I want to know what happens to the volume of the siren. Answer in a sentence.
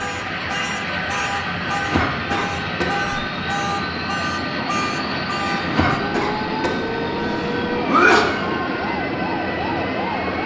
The volume of the siren stays about the same.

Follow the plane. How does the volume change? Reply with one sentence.
The volume of the plane stays about the same.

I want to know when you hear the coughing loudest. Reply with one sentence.
The volume of the coughing peaks at 8 seconds.